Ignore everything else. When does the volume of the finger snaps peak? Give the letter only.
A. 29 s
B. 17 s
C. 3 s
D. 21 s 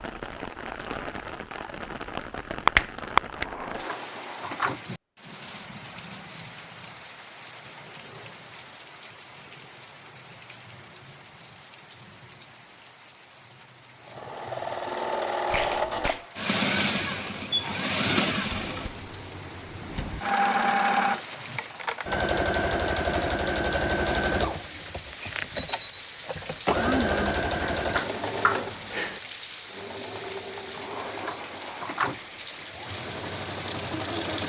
C.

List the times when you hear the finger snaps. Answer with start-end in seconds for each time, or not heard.
2.6-3.5, 15.5-16.2, 27.8-29.2.